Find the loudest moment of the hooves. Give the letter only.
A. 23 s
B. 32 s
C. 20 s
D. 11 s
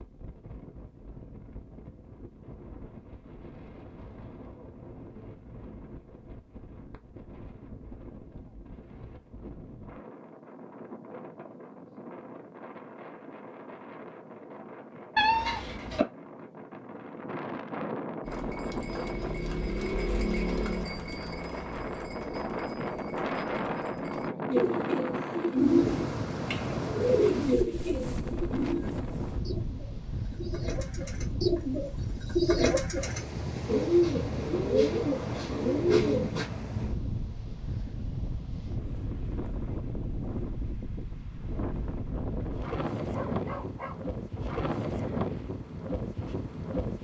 C.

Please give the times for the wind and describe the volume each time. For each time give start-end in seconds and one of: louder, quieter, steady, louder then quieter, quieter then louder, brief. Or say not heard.
0.0-46.9 louder.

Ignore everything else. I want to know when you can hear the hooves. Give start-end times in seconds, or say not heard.
18.2-24.3.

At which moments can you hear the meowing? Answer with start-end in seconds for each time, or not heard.
15.2-16.1.